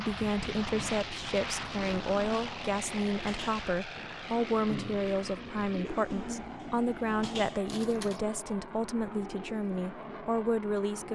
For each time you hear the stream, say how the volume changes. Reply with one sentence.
The stream can't be heard in this clip.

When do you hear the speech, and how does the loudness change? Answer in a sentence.
You can hear the speech from 0.0 to 11.1 s, at a steady volume.